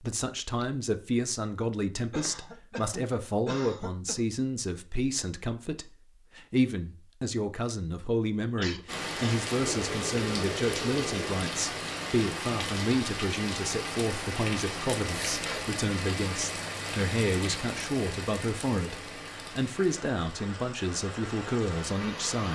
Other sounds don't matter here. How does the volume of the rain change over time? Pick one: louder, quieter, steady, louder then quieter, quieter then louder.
quieter.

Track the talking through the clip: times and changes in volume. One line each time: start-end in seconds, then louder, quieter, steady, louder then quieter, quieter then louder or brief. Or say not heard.
0.0-22.5 steady.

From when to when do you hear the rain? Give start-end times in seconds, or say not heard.
8.8-22.5.